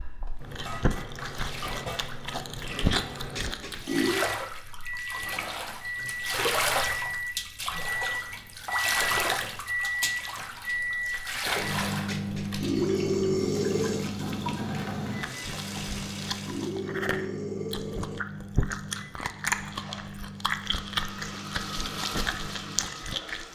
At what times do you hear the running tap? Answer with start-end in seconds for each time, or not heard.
0.0-16.8, 19.6-23.5.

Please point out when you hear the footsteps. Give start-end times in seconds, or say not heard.
not heard.